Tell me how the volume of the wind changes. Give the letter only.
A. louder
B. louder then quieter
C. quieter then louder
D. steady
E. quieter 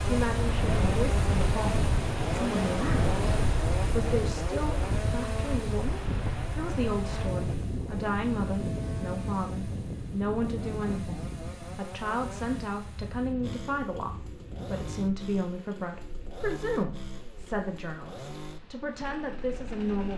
E.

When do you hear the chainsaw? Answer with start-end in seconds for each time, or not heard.
0.0-20.1.